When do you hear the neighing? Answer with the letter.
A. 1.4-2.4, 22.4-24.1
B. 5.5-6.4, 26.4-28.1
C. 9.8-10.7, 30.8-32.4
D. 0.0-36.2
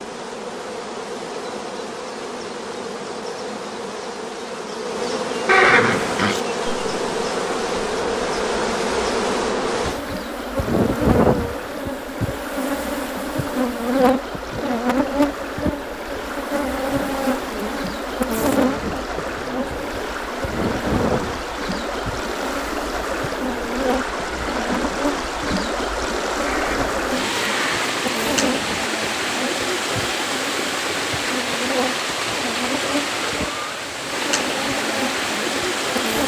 B.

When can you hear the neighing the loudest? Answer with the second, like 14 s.
6 s.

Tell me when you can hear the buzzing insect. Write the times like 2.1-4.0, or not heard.
0.0-36.2.